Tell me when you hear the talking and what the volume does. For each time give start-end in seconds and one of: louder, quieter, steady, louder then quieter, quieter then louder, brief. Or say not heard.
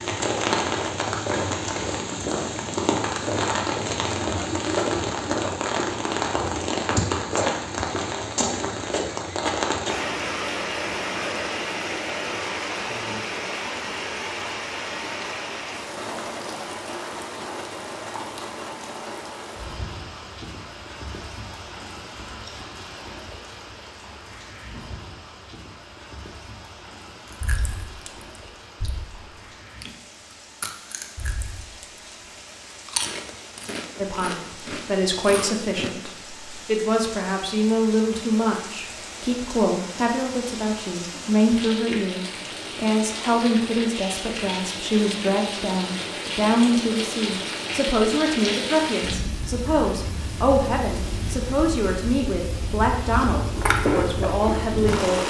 34.0-55.2 steady.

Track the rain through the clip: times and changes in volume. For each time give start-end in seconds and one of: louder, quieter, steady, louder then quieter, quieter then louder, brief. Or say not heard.
0.0-55.2 quieter then louder.